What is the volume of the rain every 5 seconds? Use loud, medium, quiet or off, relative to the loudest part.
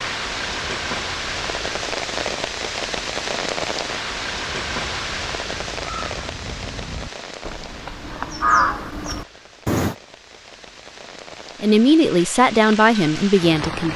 loud, medium, medium.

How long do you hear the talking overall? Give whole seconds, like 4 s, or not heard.
2 s.